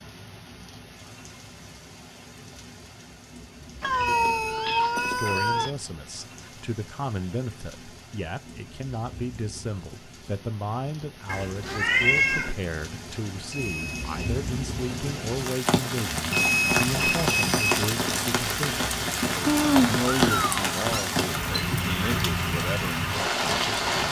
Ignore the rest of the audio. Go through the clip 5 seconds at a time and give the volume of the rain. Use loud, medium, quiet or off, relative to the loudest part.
quiet, quiet, quiet, loud, loud.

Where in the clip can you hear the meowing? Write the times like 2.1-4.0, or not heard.
3.8-5.7, 11.2-12.6, 19.4-21.1.